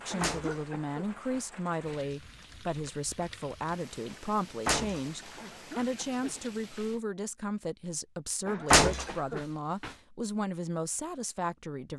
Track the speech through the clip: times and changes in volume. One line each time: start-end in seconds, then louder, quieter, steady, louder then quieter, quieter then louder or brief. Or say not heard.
0.0-11.9 steady.